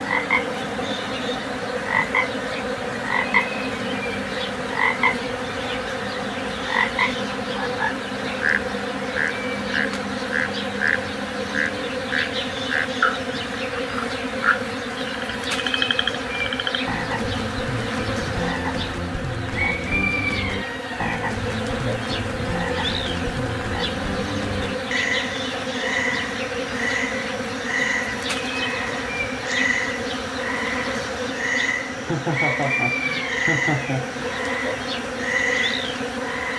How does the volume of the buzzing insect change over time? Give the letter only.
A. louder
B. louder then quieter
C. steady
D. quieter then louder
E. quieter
C.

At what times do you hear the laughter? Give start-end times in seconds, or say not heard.
31.9-34.3.